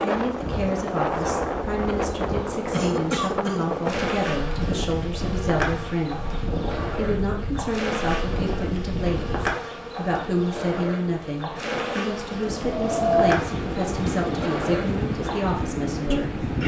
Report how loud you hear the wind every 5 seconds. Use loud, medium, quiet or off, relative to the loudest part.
loud, medium, loud, loud.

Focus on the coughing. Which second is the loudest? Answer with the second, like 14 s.
3 s.